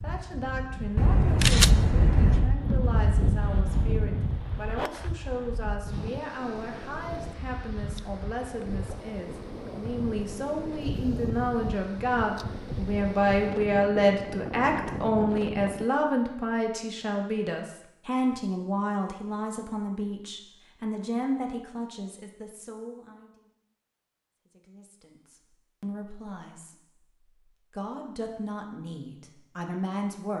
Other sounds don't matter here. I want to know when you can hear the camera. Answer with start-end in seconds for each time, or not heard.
0.9-2.5.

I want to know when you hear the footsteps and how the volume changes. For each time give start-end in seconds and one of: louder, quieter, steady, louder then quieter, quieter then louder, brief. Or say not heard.
not heard.